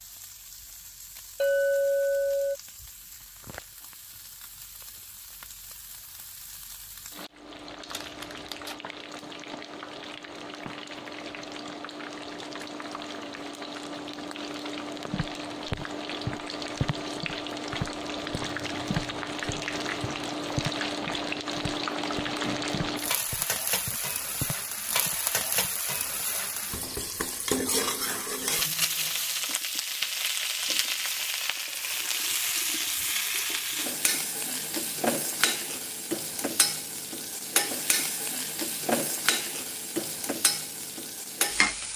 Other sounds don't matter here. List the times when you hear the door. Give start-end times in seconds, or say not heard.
not heard.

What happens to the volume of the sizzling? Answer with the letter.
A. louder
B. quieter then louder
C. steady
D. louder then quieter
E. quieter
A.